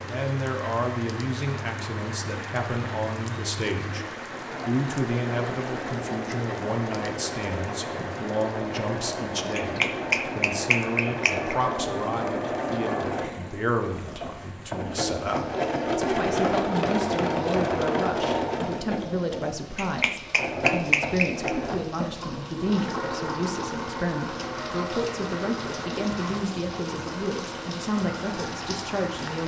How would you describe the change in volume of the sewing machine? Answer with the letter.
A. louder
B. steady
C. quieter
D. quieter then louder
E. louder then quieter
E.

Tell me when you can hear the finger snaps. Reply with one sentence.
The finger snaps can be heard from 9.6 to 11.6 s and from 19.8 to 21.5 s.